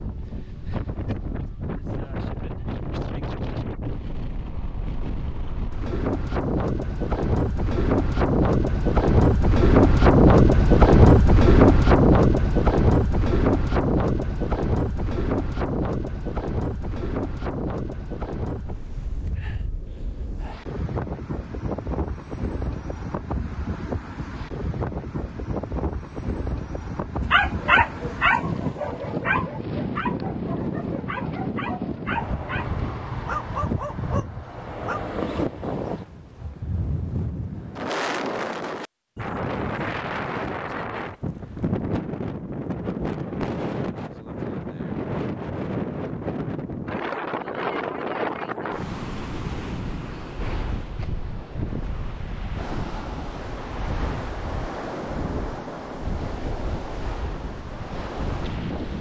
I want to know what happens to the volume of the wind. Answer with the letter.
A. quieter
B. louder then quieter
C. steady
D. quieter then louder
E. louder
A.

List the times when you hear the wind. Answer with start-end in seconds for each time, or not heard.
0.0-58.9.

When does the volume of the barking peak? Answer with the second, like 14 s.
28 s.